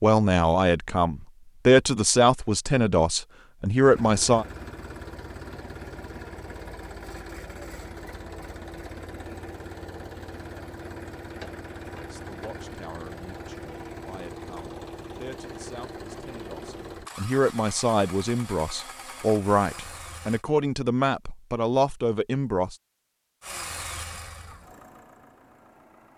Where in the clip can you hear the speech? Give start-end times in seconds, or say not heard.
0.0-4.5, 11.8-22.8.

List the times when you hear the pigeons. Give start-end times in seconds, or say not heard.
not heard.